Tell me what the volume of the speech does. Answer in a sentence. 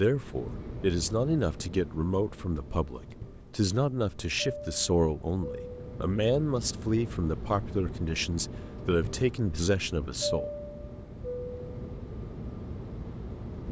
The loudness of the speech stays about the same.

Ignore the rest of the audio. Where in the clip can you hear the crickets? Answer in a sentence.
You can't hear the crickets here.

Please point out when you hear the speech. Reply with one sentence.
The speech can be heard from 0.0 to 10.5 s.